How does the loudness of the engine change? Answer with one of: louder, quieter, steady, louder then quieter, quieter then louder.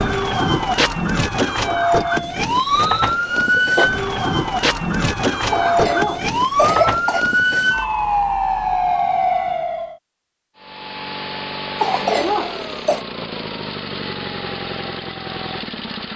steady.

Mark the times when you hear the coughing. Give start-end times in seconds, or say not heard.
2.8-3.9, 5.5-7.2, 11.8-13.1.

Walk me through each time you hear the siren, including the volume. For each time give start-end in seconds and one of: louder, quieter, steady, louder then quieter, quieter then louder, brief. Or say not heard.
0.0-9.9 steady.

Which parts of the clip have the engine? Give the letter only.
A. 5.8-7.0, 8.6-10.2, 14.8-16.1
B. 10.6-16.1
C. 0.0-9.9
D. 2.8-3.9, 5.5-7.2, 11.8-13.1
B.